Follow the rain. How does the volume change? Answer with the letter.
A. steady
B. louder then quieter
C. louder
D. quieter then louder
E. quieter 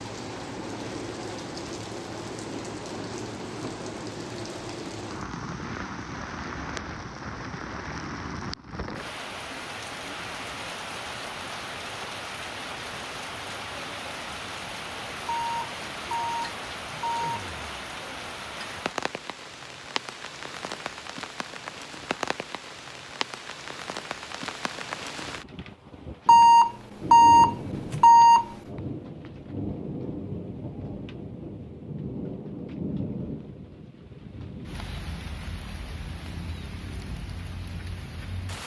A.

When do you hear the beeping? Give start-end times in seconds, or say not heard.
15.2-17.4, 26.2-28.6.